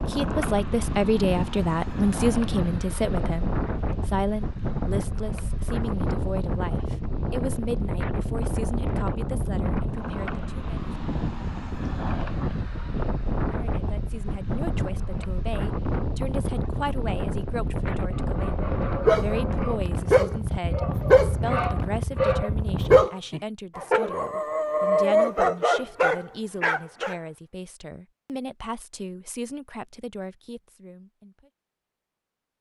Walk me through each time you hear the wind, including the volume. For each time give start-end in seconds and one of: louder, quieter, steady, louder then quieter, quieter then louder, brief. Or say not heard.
0.0-23.1 steady.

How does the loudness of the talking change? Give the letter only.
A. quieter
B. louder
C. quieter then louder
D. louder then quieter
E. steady
A.